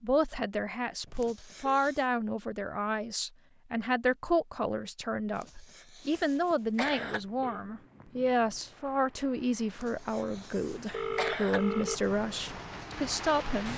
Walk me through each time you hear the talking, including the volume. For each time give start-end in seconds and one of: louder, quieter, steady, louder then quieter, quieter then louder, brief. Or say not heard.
0.0-13.7 steady.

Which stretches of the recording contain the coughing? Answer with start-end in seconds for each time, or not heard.
1.1-2.0, 5.3-7.2, 9.8-11.6.